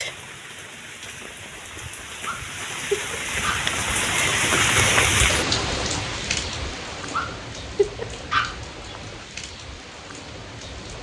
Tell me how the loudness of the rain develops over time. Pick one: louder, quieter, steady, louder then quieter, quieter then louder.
louder then quieter.